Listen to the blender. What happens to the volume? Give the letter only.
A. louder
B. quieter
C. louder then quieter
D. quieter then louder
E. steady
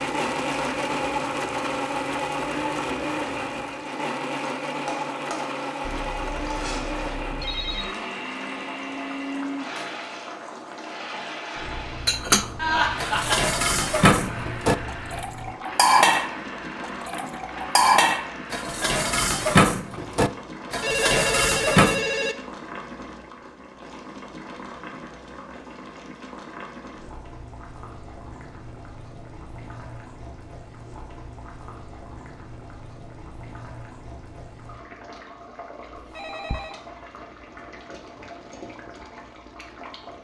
B.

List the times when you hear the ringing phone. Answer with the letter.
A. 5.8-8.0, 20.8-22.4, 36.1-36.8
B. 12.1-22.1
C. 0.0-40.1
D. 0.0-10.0
A.